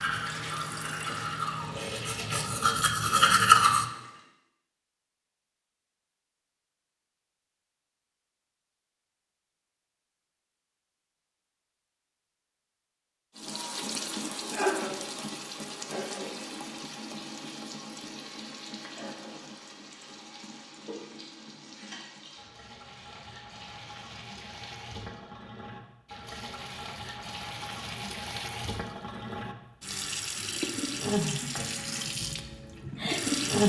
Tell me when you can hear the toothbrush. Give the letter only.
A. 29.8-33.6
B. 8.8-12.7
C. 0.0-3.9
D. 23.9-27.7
C.